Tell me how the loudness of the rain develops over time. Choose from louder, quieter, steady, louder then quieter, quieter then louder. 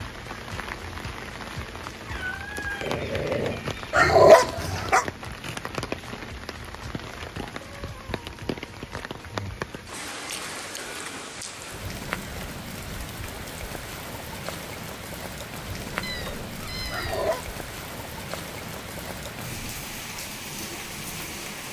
steady.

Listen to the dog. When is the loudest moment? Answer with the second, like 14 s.
4 s.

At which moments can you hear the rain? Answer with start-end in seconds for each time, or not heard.
0.0-21.6.